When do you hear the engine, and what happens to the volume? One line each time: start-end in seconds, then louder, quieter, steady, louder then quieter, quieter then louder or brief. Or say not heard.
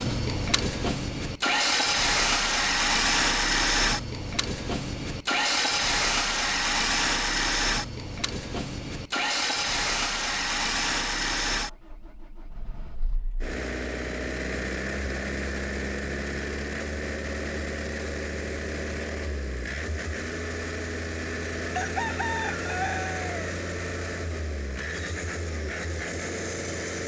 0.0-27.0 quieter.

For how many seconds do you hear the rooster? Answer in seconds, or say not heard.
2 s.